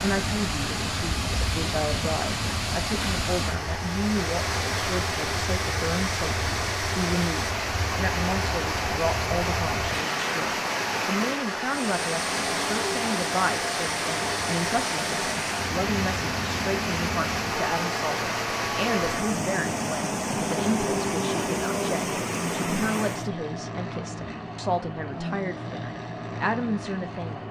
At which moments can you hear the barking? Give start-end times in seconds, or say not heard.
not heard.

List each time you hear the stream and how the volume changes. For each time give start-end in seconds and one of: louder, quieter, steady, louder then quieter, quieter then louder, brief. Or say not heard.
0.0-23.3 steady.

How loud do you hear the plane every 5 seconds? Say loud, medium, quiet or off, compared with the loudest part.
medium, loud, loud, loud, loud, loud.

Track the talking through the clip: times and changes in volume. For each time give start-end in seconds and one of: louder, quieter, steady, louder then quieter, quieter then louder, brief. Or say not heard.
0.0-27.4 steady.